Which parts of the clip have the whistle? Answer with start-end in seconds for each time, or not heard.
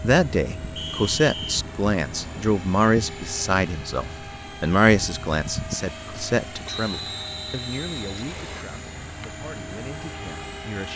0.8-1.6, 6.7-8.7.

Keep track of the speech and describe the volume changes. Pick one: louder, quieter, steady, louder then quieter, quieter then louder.
quieter.